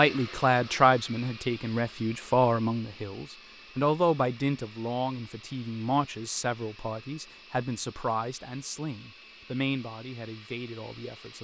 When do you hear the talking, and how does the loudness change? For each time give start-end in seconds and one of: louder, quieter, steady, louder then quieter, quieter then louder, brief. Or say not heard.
0.0-11.3 quieter.